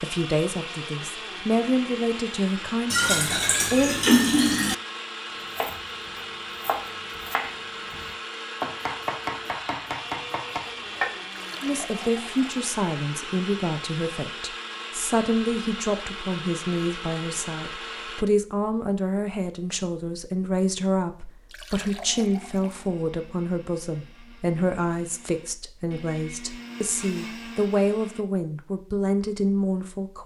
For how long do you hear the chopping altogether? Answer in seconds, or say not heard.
6 s.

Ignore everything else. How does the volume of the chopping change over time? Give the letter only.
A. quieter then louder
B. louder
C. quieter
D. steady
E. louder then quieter
D.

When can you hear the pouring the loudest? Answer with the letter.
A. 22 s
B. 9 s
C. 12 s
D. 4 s
D.